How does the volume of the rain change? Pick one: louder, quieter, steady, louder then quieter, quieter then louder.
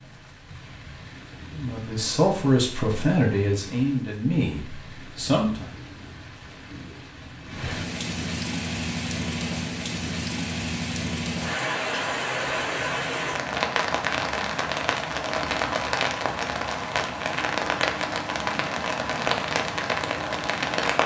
louder.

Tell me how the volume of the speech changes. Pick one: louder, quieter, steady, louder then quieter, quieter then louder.
quieter.